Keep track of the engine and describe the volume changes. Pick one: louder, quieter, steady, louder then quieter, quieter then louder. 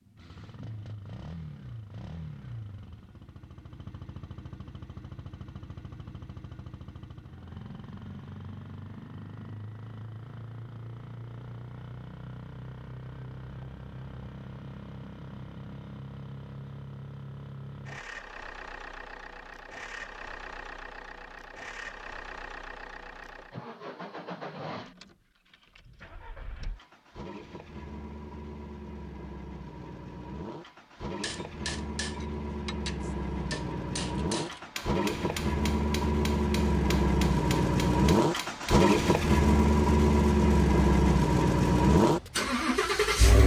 louder.